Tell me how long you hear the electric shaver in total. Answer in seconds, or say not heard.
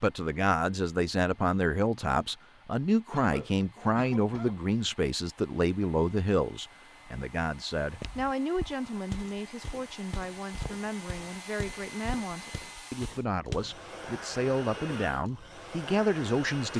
not heard.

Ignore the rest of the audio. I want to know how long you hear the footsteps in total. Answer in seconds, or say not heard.
6 s.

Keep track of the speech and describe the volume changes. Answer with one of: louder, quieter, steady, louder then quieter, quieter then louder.
quieter then louder.